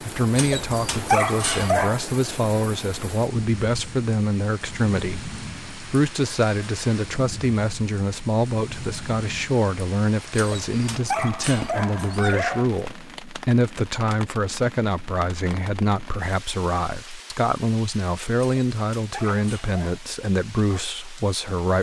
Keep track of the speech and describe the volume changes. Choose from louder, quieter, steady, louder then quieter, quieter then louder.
steady.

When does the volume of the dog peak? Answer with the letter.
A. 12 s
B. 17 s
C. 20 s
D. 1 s
D.